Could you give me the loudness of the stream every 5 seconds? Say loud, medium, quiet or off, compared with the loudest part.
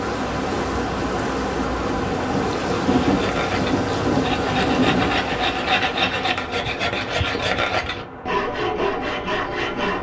loud, medium.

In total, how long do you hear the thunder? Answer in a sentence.
You can hear the thunder for 3 seconds altogether.